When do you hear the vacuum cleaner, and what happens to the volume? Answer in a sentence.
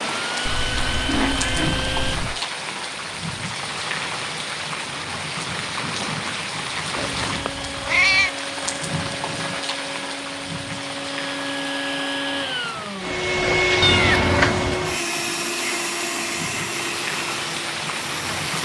You can hear the vacuum cleaner briefly from 0.0 to 2.2 s; and from 7.0 to 18.6 s, getting louder then quieter.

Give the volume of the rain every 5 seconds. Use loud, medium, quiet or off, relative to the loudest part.
loud, loud, medium, loud.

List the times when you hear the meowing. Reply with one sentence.
You can hear the meowing from 0.5 to 2.4 s, from 7.0 to 8.3 s and from 13.8 to 14.8 s.